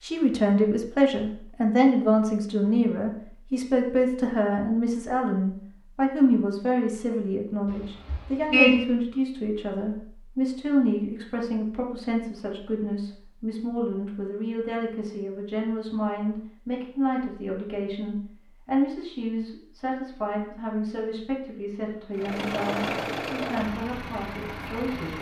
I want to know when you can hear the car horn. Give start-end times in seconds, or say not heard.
7.7-8.8.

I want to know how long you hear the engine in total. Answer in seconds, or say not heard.
3 s.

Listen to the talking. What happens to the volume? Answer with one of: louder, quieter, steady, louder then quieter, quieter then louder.
quieter.